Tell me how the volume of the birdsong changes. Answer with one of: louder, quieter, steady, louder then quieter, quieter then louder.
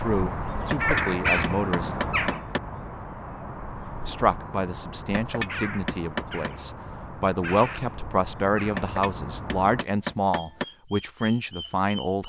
quieter.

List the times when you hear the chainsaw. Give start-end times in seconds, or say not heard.
not heard.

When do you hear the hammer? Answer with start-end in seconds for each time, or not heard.
0.7-2.6, 5.1-6.5, 8.8-10.7.